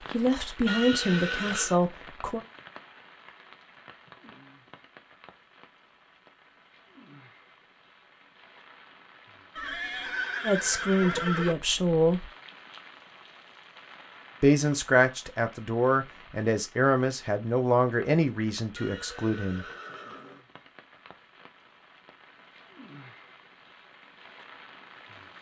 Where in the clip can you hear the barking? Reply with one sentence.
You can't hear the barking here.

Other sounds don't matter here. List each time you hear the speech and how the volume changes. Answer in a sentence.
You can hear the speech briefly from 0.1 to 2.4 s; briefly from 10.4 to 12.3 s; and from 14.4 to 19.6 s, getting quieter.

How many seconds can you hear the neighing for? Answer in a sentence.
You can hear the neighing for 5 seconds altogether.